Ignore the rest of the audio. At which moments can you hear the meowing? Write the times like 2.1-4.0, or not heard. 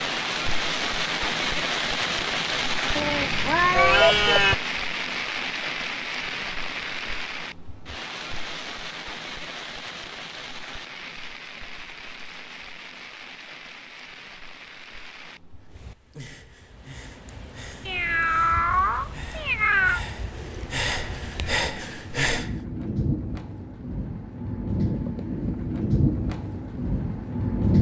3.0-4.5, 17.9-20.0.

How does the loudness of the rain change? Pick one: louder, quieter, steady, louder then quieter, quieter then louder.
quieter then louder.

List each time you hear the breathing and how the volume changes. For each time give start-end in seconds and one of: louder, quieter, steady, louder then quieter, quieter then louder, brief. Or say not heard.
15.6-22.6 louder.